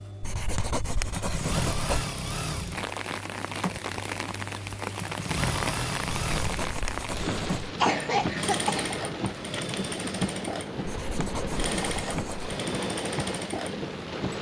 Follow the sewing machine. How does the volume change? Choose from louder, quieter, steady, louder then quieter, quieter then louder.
steady.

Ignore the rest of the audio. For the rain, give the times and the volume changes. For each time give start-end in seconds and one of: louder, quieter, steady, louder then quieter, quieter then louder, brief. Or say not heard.
2.7-14.3 steady.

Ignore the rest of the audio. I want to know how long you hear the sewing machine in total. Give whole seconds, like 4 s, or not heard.
14 s.